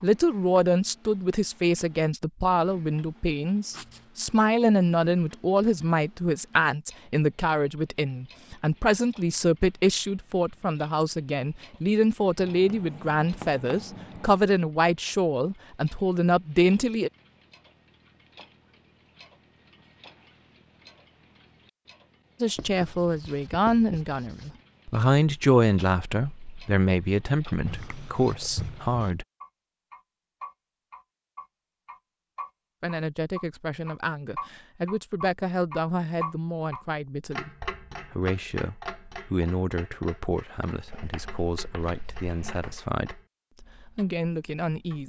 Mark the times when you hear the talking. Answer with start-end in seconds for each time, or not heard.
0.0-17.1, 22.4-29.2, 32.8-45.0.